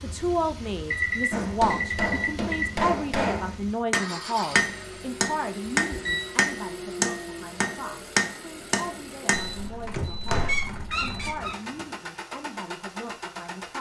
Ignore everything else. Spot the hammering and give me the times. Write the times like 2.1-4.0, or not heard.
1.3-10.5.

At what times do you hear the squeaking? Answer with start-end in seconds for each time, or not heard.
10.4-11.8.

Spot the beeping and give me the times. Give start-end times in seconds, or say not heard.
0.9-2.7, 5.7-6.3, 9.3-11.3.